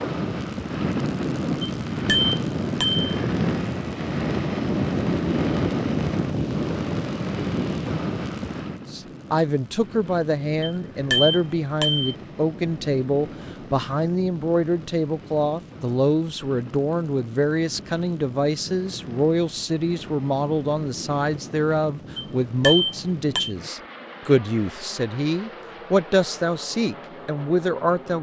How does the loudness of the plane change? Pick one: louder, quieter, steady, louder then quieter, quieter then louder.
quieter.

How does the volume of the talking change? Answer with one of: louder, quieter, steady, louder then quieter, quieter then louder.
steady.